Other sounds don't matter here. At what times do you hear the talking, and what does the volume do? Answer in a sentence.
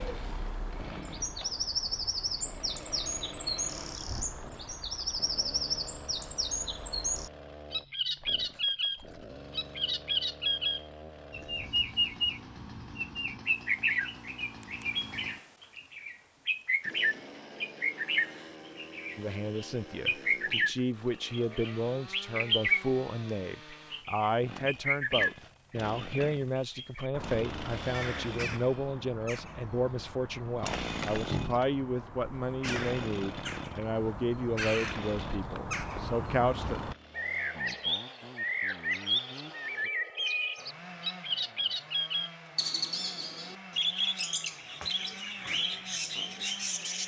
The talking can be heard from 19.1 to 36.9 s, at a steady volume.